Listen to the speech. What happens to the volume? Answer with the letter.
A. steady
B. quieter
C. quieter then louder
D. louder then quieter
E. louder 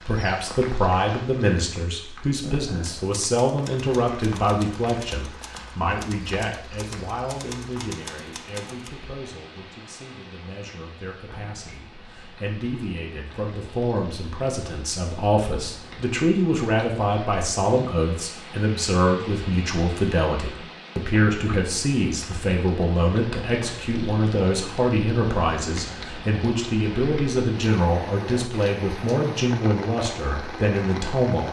C.